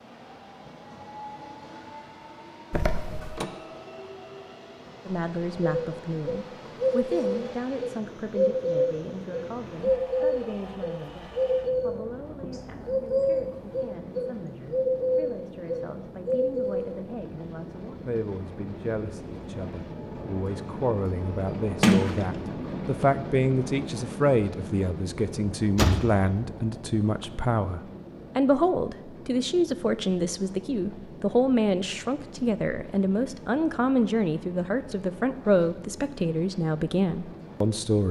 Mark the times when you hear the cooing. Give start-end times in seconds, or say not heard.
5.7-16.9.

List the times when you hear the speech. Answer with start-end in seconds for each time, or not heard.
5.0-38.0.